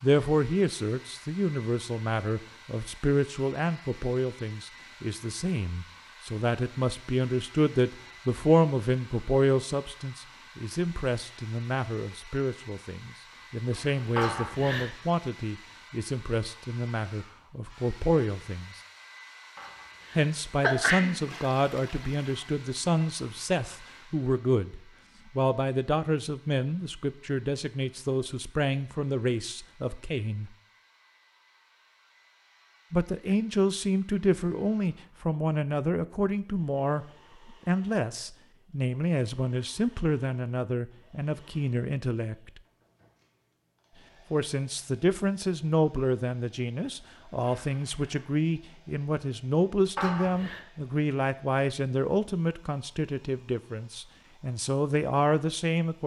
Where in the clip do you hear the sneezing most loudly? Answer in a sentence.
The volume of the sneezing peaks at 21 seconds.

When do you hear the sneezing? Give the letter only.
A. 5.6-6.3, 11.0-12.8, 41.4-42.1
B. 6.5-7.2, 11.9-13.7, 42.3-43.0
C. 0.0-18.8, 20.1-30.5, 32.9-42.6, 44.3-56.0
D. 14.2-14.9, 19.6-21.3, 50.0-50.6
D.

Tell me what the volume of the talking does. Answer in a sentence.
The volume of the talking stays about the same.